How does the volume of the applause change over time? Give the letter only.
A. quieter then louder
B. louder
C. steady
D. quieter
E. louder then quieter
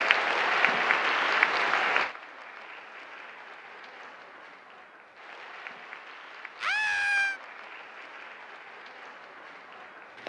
D.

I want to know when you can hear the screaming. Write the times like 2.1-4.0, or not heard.
6.6-7.4.